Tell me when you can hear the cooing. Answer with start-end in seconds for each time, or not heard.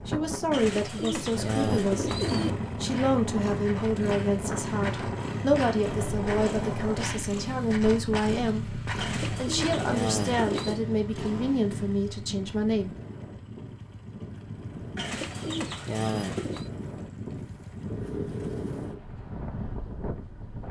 0.5-2.5, 8.9-10.8, 14.9-16.7.